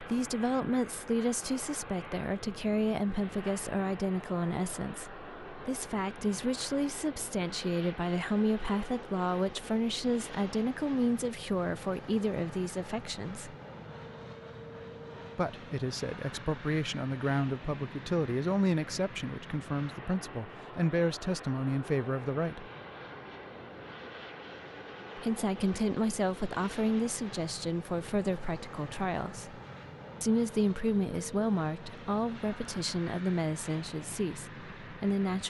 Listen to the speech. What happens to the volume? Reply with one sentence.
The volume of the speech stays about the same.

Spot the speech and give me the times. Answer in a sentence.
The speech can be heard from 0.0 to 13.6 s, from 15.3 to 22.7 s, from 25.1 to 29.6 s and from 30.2 to 35.4 s.